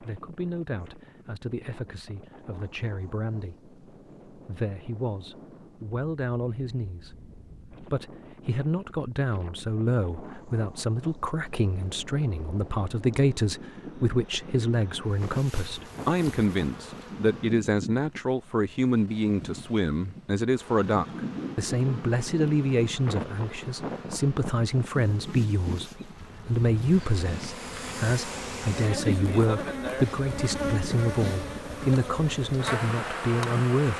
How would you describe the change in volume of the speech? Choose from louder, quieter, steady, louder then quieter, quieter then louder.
louder.